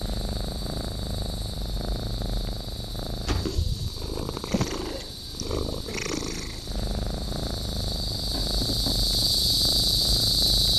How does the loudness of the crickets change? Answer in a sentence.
The loudness of the crickets goes up.